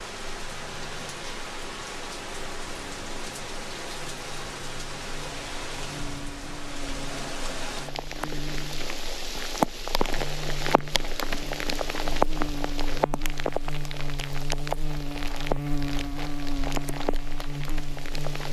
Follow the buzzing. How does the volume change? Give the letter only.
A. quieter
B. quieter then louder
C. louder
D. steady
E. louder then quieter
C.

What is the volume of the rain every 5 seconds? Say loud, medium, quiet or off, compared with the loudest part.
medium, loud, loud, medium.